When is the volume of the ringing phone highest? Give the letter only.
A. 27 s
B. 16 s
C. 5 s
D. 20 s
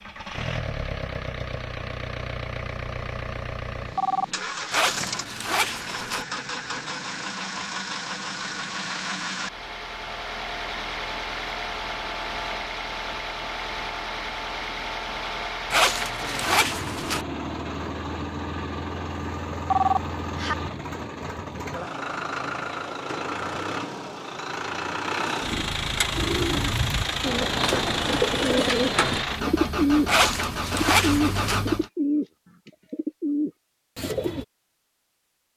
D.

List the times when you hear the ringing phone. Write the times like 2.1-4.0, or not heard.
3.8-4.8, 19.5-20.6.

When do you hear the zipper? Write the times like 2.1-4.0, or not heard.
4.7-6.2, 15.7-17.2, 30.1-31.6.